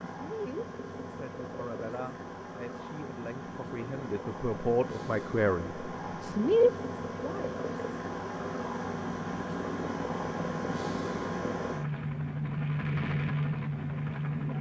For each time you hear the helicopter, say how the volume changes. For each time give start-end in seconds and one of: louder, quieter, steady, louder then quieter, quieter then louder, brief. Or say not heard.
0.0-14.5 louder.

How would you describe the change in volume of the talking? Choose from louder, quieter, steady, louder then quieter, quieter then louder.
louder.